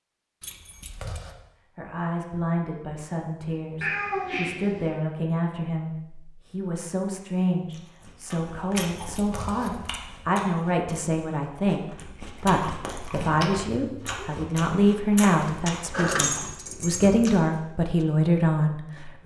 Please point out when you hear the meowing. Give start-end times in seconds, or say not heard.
3.8-5.0, 13.2-14.3.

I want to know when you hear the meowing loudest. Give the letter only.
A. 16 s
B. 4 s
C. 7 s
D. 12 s
B.